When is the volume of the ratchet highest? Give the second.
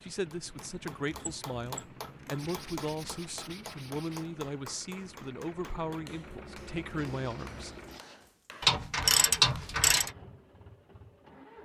9 s.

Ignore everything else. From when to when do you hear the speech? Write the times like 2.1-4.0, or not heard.
0.0-7.7.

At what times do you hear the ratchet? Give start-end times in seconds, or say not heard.
0.6-2.5, 8.6-10.1.